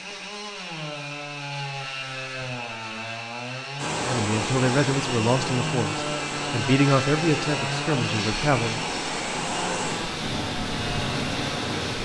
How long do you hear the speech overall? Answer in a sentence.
You can hear the speech for 5 seconds altogether.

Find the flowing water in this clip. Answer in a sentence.
The flowing water can be heard from 3.8 to 11.9 s.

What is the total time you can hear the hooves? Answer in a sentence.
You can't hear the hooves here.